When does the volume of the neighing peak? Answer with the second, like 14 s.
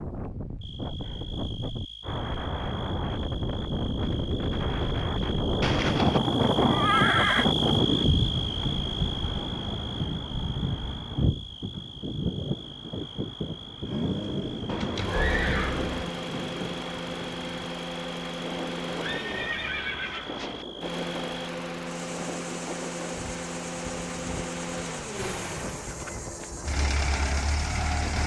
7 s.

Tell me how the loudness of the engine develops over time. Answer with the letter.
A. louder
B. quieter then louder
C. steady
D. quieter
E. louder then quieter
C.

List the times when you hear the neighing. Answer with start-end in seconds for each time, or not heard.
5.6-7.5, 14.7-16.1, 18.9-20.6.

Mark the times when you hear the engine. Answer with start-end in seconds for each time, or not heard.
13.8-28.2.